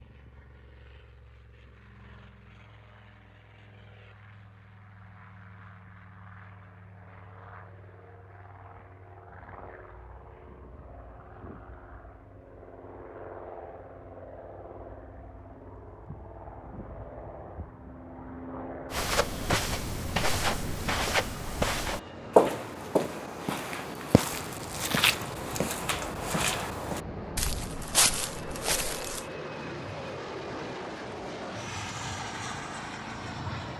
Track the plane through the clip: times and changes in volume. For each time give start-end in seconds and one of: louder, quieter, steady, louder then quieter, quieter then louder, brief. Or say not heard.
0.0-33.7 louder.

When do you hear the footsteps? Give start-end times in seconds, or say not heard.
18.9-29.2.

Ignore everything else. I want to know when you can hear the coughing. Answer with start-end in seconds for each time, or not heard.
not heard.